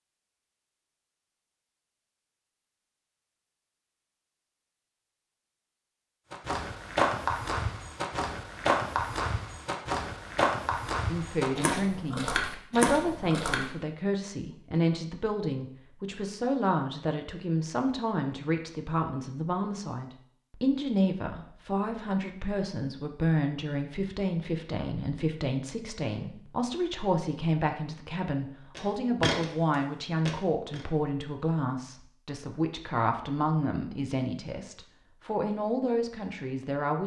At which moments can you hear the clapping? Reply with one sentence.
You can't hear the clapping here.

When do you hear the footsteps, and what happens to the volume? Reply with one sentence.
The footsteps can be heard from 6.3 to 13.7 s, at a steady volume; and briefly from 28.8 to 30.9 s.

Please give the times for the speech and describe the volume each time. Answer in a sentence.
You can hear the speech from 11.1 to 37.0 s, at a steady volume.